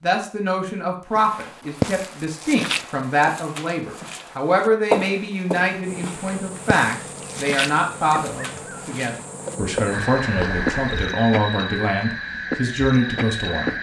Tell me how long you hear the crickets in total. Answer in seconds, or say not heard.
8 s.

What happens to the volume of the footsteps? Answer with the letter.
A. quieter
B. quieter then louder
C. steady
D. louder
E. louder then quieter
A.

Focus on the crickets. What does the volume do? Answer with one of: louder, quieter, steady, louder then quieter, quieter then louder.
louder.